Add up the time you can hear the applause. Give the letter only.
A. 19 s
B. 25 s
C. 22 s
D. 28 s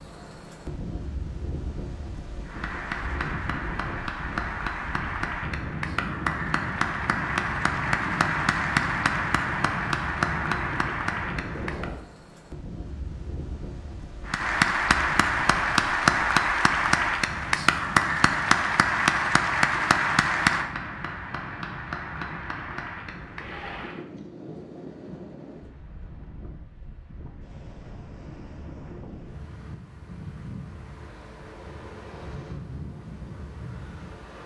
A.